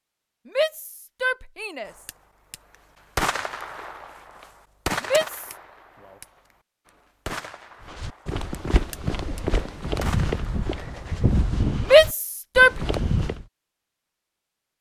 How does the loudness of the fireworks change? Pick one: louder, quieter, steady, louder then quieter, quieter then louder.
quieter then louder.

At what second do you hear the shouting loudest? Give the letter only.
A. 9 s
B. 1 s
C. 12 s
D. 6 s
C.